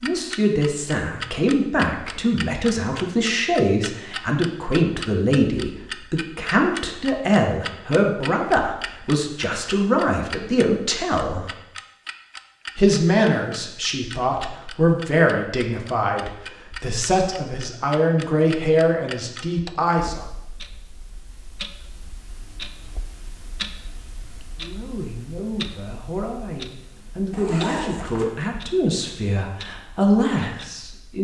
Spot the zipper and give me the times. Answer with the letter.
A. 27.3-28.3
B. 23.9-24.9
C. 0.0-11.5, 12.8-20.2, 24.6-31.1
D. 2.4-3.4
A.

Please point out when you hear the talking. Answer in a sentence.
You can hear the talking from 0.0 to 11.5 s, from 12.8 to 20.2 s and from 24.6 to 31.1 s.